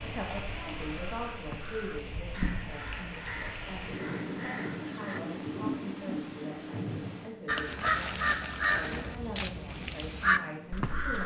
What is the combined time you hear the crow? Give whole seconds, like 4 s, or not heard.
9 s.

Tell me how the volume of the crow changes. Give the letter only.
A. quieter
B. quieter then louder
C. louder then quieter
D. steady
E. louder
E.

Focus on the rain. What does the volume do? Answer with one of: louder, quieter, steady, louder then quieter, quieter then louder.
louder then quieter.